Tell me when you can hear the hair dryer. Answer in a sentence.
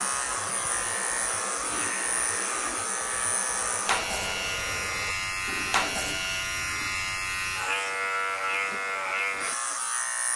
The hair dryer can be heard from 0.0 to 5.2 s.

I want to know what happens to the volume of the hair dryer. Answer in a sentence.
The loudness of the hair dryer stays about the same.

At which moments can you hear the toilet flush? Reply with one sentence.
The toilet flush can be heard from 1.6 to 2.9 s and from 5.5 to 7.0 s.